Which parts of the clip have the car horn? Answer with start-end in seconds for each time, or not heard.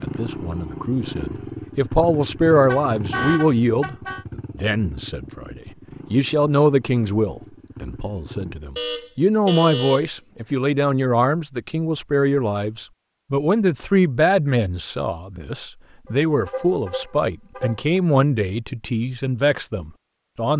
2.5-4.2, 8.8-10.1, 16.1-17.8.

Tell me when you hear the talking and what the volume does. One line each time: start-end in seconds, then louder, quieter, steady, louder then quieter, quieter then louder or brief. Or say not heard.
0.0-20.5 steady.